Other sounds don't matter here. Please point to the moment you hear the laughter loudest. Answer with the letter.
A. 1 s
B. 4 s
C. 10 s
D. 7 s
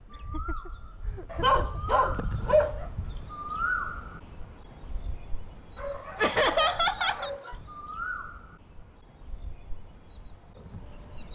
D.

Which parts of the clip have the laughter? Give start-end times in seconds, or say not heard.
0.1-1.8, 6.2-7.3.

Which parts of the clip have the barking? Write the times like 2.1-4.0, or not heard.
1.3-2.9, 5.8-7.6.